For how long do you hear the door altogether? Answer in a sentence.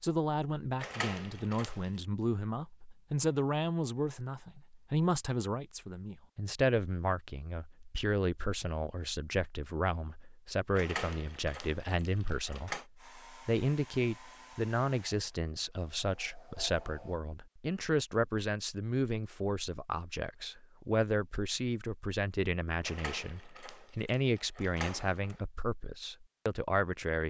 The door can be heard for 6 seconds in total.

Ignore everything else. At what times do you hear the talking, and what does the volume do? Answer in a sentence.
The talking can be heard from 0.0 to 27.2 s, at a steady volume.